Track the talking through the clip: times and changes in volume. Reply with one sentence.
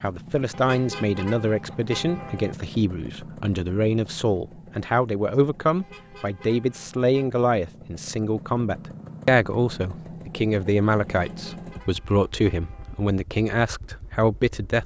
The talking can be heard from 0.0 to 14.8 s, at a steady volume.